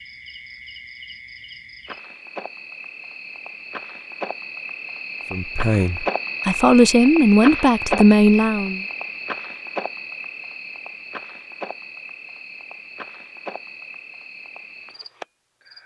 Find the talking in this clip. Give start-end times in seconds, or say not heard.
5.3-8.8.